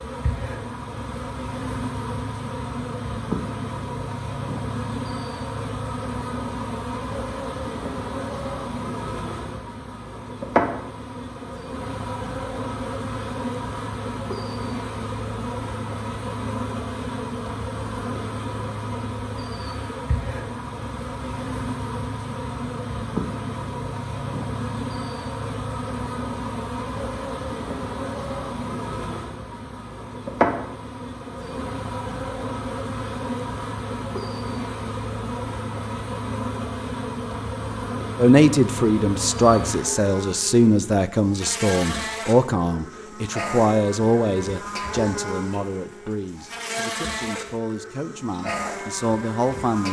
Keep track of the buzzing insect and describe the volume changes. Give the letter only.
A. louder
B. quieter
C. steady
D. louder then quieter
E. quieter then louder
C.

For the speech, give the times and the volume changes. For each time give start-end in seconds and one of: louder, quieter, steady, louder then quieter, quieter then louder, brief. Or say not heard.
38.1-49.8 quieter.